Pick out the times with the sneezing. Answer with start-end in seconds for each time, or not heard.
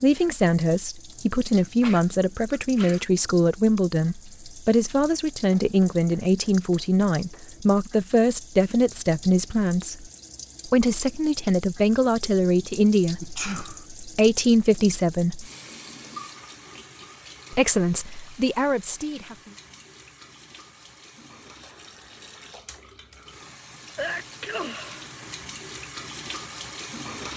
1.6-3.0, 13.2-13.8, 23.9-25.4.